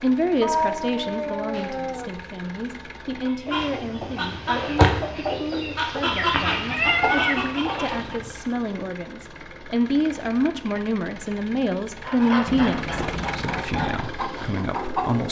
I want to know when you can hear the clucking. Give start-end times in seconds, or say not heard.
3.2-8.4, 12.0-15.2.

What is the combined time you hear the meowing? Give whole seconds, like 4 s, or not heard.
4 s.